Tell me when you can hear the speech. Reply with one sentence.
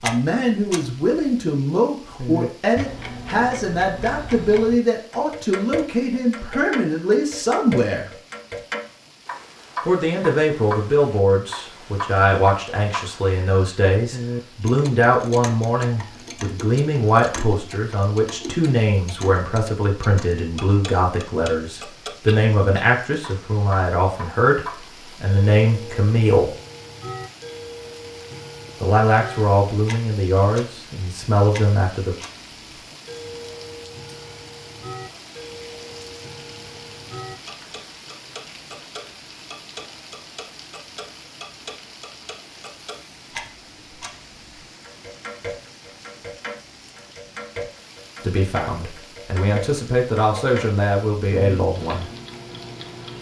You can hear the speech from 0.0 to 8.1 s, from 9.8 to 26.5 s, from 28.8 to 32.1 s and from 48.2 to 52.0 s.